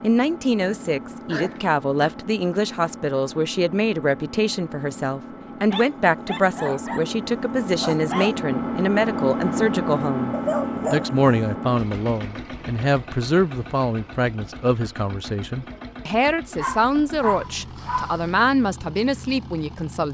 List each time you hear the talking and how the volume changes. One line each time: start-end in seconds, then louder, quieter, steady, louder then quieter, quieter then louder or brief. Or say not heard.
0.0-20.1 steady.